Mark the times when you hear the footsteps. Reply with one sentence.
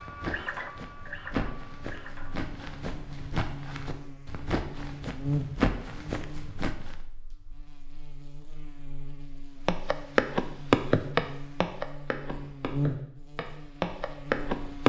The footsteps can be heard from 0.0 to 7.0 s and from 9.7 to 14.8 s.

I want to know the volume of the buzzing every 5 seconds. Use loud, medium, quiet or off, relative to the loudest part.
medium, loud, loud.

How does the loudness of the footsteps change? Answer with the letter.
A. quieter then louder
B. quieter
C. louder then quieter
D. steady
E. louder
E.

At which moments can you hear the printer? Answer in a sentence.
The printer can be heard from 0.0 to 2.4 s.